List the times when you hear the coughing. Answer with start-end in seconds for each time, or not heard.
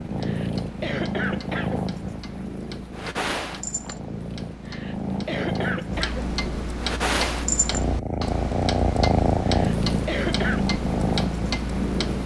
0.2-1.9, 4.7-6.3, 9.4-10.7.